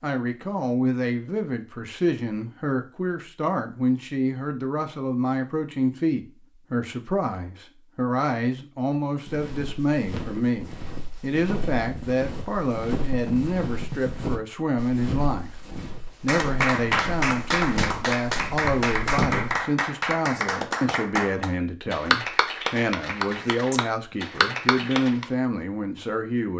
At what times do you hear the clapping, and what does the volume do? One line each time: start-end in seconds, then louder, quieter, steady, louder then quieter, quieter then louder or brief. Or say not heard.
16.2-25.2 steady.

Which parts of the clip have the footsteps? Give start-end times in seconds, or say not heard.
9.2-19.6.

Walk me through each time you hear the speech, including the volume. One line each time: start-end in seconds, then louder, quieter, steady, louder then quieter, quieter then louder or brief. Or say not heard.
0.0-26.5 steady.